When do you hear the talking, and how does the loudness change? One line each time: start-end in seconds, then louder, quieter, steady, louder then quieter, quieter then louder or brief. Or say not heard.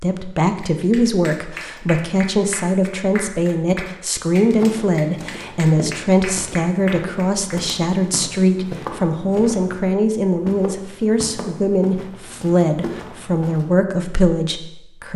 0.0-15.1 steady.